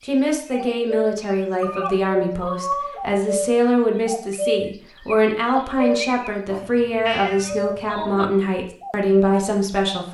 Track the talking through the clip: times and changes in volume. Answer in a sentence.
The talking can be heard from 0.0 to 10.0 s, at a steady volume.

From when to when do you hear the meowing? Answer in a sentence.
You can hear the meowing from 1.6 to 3.0 s and from 6.5 to 8.2 s.